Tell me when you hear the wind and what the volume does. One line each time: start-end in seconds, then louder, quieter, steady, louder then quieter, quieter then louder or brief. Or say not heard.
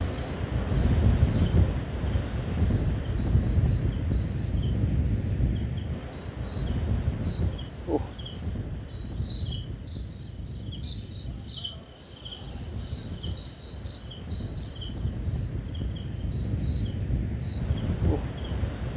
0.0-18.9 quieter then louder.